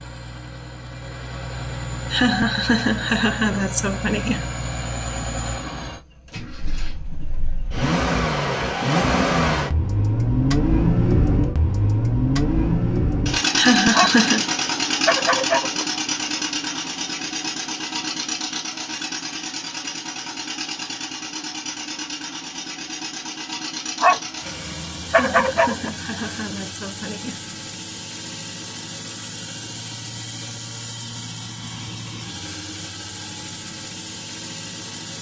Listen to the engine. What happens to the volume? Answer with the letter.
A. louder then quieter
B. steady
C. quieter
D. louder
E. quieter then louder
A.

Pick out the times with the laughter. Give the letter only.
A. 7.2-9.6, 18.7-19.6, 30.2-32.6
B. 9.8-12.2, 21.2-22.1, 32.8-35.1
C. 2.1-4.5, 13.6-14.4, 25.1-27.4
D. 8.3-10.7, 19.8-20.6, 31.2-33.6
C.